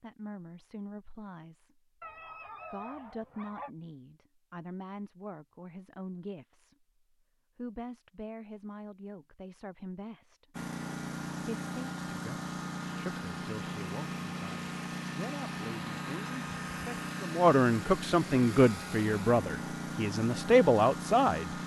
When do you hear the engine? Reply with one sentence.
The engine can be heard from 10.5 to 21.6 s.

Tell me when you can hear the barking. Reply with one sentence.
You can hear the barking from 2.0 to 3.7 s.